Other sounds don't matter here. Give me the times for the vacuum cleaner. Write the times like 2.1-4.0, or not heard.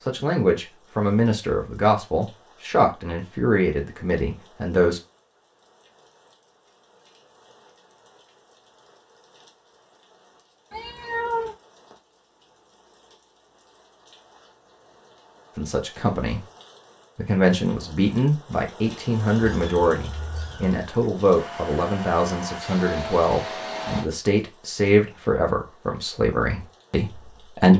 21.3-24.1.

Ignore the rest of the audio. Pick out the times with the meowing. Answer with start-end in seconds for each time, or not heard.
10.7-11.6, 19.4-20.8.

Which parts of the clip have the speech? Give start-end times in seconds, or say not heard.
0.1-5.0, 15.6-16.4, 17.1-27.7.